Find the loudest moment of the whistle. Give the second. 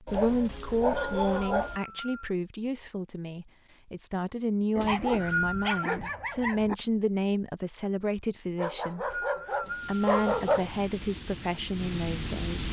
5 s.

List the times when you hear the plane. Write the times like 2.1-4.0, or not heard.
9.6-12.6.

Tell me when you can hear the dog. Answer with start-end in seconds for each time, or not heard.
0.1-1.8, 4.8-6.8, 8.6-10.7.